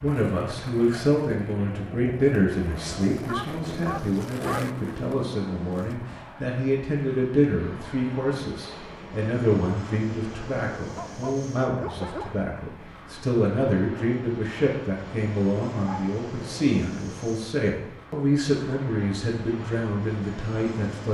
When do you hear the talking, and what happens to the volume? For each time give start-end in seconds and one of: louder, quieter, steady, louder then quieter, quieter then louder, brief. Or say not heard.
0.0-21.0 steady.